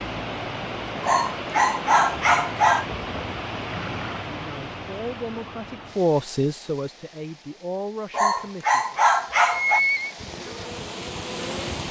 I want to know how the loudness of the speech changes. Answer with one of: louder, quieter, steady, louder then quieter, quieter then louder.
louder then quieter.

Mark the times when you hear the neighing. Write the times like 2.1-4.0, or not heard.
3.6-4.2, 9.5-10.2.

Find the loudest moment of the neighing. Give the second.
10 s.